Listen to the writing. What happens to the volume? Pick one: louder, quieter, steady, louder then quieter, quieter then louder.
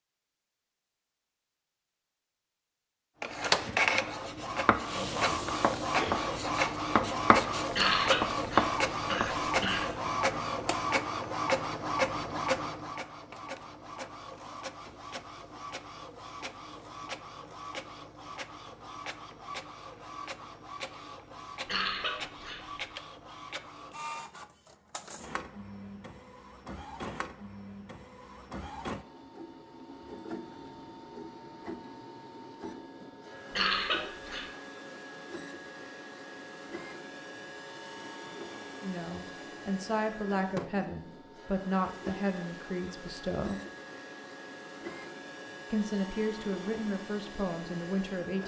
louder.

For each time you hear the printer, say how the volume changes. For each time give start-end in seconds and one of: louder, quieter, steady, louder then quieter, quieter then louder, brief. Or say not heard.
3.2-48.4 quieter.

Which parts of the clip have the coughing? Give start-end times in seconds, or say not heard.
7.8-9.9, 21.6-22.6, 33.5-34.5.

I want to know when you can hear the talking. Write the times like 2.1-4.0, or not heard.
38.8-43.6, 45.7-48.4.